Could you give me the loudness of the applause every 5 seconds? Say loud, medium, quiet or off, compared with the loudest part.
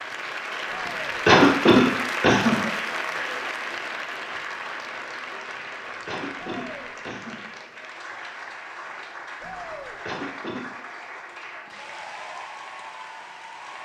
loud, medium, medium.